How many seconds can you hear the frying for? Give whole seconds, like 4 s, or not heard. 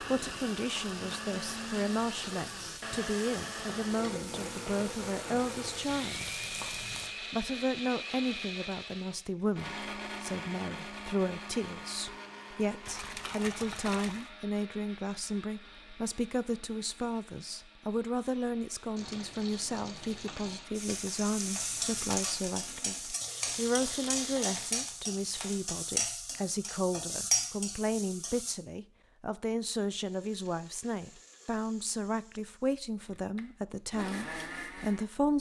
15 s.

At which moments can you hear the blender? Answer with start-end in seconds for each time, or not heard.
0.0-25.6, 29.9-35.1.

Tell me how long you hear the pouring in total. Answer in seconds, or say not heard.
3 s.